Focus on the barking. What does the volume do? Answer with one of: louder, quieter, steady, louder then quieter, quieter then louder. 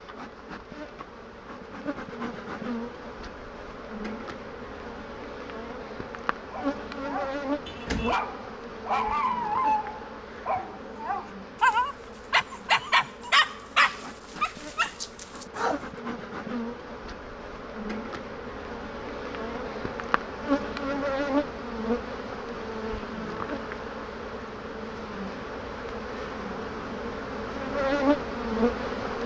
louder.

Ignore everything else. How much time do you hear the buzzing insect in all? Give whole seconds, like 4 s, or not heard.
29 s.